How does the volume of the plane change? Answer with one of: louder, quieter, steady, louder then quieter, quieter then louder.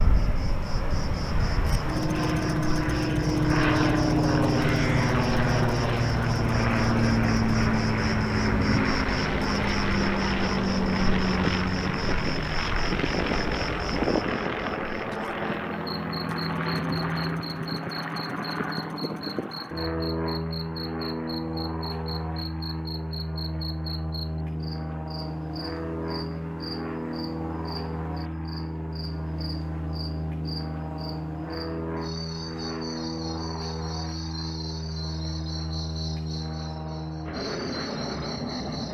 quieter.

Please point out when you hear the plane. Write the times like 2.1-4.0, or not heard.
0.0-38.8.